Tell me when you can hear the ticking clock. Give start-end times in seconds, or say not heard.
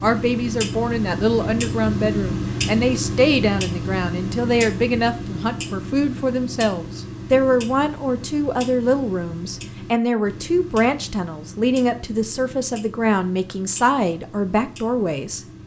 0.0-15.6.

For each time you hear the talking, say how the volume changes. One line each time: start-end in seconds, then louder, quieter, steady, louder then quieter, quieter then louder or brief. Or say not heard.
0.0-15.6 steady.